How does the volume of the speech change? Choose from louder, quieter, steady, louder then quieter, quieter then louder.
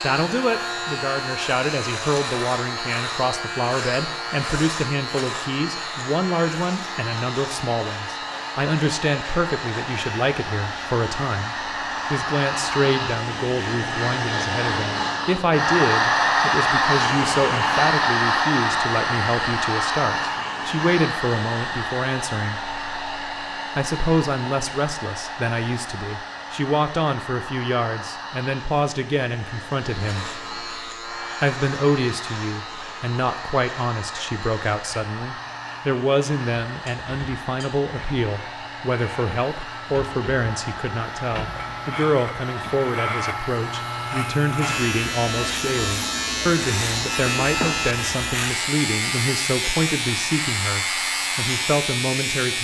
steady.